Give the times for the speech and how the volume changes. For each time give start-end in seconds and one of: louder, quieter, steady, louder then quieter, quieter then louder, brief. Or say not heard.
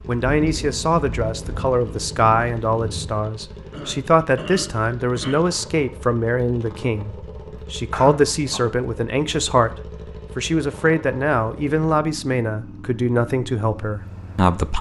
0.1-14.7 steady.